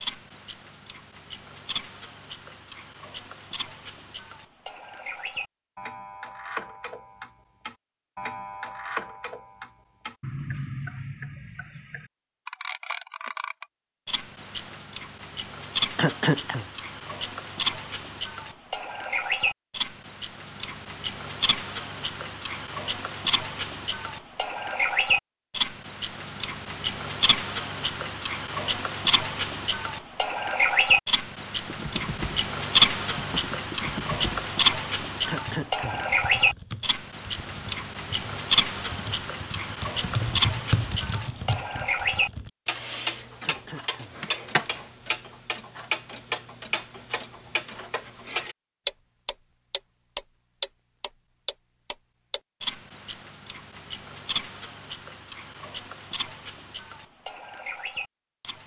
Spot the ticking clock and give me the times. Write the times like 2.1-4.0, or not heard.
0.0-58.6.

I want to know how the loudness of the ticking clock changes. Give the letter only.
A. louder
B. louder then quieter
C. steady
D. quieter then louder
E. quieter
B.